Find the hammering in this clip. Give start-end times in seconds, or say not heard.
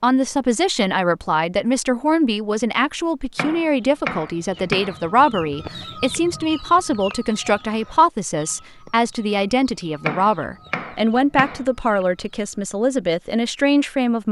3.4-5.0, 10.1-12.1.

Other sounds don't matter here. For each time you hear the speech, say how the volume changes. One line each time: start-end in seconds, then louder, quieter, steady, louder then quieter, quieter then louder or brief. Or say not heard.
0.0-14.2 steady.